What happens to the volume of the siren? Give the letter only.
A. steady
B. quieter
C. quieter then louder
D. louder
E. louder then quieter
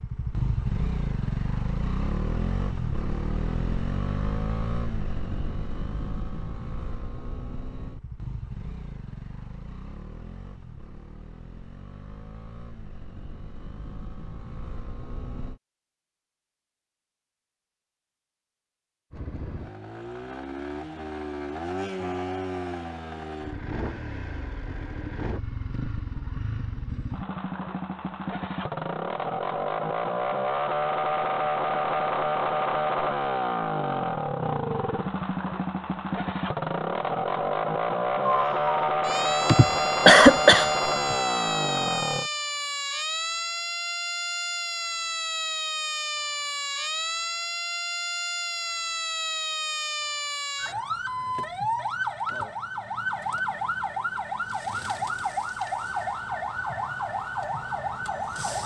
A.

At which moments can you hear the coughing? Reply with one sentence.
You can hear the coughing from 39.5 to 41.1 s.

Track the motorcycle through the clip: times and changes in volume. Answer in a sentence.
The motorcycle can be heard from 0.0 to 15.6 s, getting quieter; and from 19.1 to 42.3 s, getting louder.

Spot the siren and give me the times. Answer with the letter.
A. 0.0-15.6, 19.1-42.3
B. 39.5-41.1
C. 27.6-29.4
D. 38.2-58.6
D.